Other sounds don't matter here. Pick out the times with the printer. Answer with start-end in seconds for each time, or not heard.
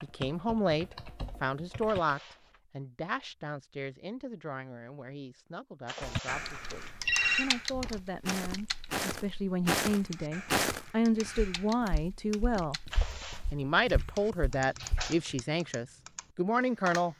not heard.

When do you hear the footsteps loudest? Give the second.
11 s.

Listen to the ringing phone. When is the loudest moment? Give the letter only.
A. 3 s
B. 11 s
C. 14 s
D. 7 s
D.